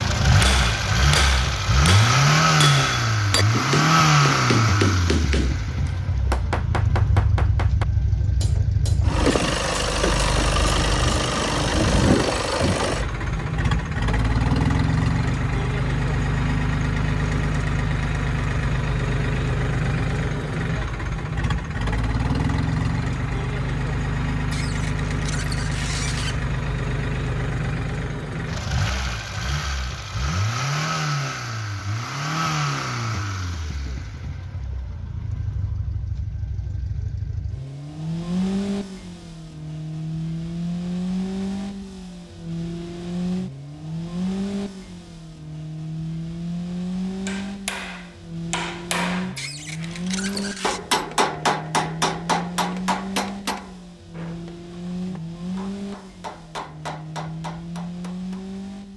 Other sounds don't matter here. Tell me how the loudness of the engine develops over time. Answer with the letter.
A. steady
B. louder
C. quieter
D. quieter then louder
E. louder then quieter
C.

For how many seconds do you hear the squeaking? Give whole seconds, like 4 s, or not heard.
3 s.